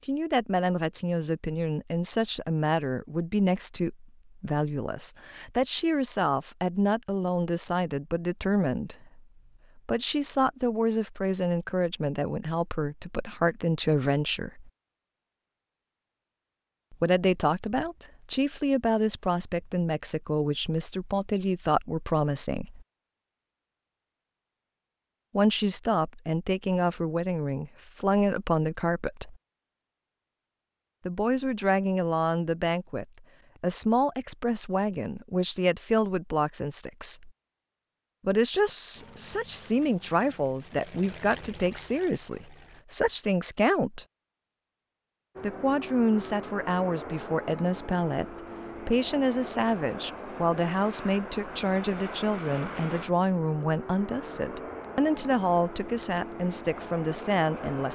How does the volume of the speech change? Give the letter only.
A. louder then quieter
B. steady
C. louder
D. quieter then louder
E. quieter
B.